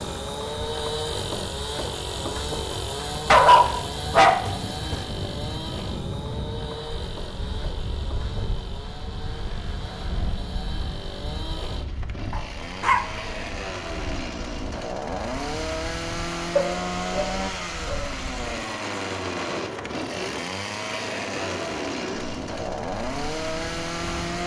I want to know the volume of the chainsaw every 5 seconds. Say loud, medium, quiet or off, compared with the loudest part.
loud, medium, medium, loud, loud.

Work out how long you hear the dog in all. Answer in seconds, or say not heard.
4 s.